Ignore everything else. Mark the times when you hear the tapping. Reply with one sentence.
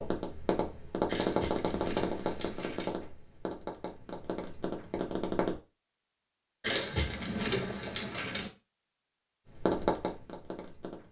You can hear the tapping from 0.0 to 5.6 s and from 9.4 to 11.0 s.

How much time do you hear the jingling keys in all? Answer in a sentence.
The jingling keys can be heard for 4 seconds in total.